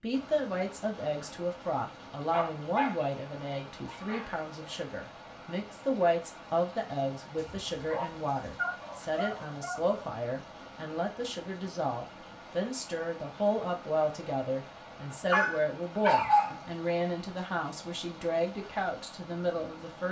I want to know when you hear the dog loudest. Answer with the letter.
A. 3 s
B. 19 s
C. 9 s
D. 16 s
D.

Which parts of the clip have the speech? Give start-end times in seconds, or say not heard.
0.0-20.0.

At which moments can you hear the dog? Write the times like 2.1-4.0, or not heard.
2.3-4.3, 7.3-10.1, 15.3-16.6.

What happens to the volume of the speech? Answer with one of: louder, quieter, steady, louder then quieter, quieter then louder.
steady.